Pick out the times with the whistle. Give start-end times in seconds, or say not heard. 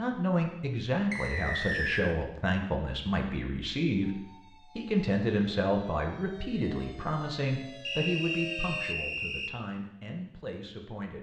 1.1-2.1, 7.8-9.6.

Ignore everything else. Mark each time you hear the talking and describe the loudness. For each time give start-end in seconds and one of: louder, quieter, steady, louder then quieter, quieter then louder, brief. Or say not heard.
0.0-11.1 quieter.